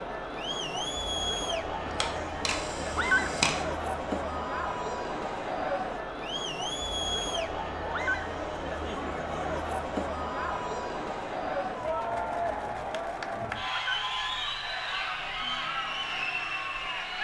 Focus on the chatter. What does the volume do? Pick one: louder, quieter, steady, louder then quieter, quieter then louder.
steady.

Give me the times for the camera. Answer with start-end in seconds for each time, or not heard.
1.9-3.6.